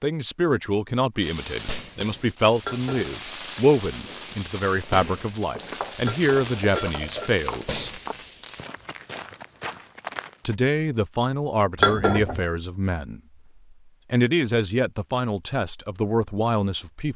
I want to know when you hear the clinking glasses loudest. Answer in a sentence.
The loudest moment of the clinking glasses is at 12 seconds.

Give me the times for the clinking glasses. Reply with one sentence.
You can hear the clinking glasses from 2.6 to 3.1 s, from 6.0 to 7.3 s and from 11.8 to 12.4 s.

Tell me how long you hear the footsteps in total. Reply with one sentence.
The footsteps can be heard for 5 seconds in total.